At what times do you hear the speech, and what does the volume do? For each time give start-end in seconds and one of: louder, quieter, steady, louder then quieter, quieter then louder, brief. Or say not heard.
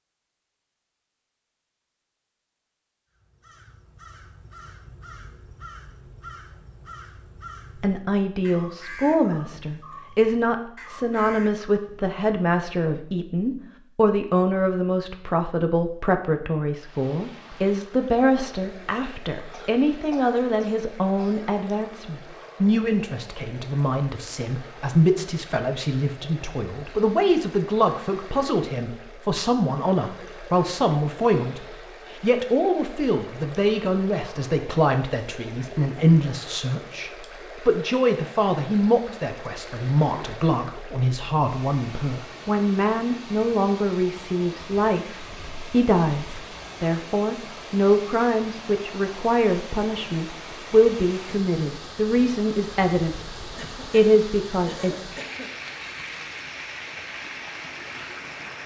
7.8-53.2 steady
53.9-54.9 brief.